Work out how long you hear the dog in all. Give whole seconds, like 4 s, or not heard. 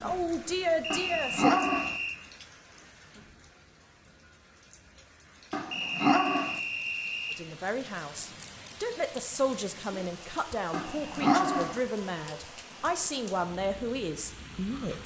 3 s.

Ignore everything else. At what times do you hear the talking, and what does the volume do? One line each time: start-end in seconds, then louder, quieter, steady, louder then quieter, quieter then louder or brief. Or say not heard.
0.0-1.6 brief
7.3-15.0 steady.